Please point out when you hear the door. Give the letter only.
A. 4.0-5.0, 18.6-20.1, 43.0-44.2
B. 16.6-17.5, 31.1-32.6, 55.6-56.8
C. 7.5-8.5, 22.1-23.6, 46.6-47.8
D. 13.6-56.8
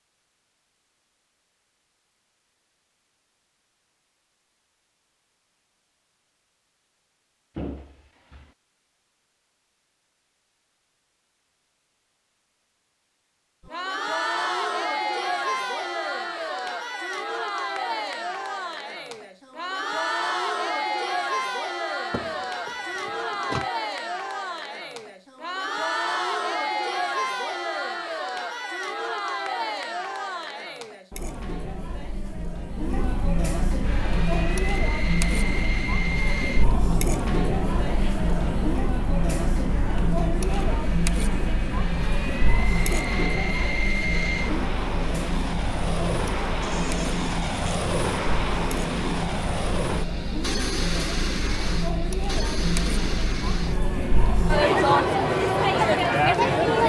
C.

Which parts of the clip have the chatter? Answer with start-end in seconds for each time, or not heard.
13.6-56.8.